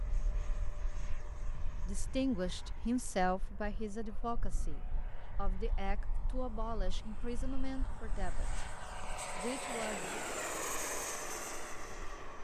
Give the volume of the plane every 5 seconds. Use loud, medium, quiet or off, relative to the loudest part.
quiet, medium, loud.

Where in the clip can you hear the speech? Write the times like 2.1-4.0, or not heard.
1.9-8.6, 9.3-10.2.